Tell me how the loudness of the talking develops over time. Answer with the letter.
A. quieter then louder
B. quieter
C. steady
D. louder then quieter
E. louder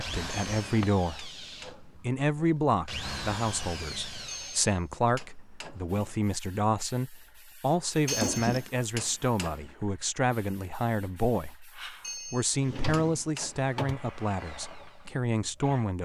C.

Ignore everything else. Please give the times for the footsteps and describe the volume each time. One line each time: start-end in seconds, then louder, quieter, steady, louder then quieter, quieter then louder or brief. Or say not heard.
not heard.